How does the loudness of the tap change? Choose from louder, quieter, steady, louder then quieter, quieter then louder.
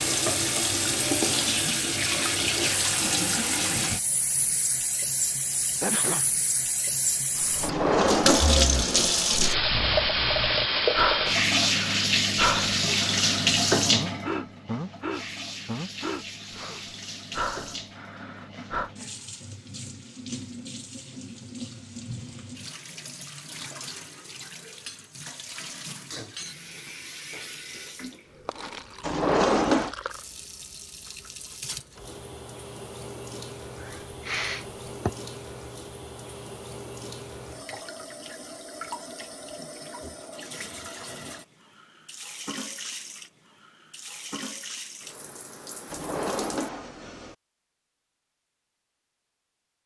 quieter.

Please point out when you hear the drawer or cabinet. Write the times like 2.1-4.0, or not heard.
7.6-9.1, 29.0-29.9, 45.9-47.4.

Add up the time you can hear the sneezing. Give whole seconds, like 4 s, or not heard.
2 s.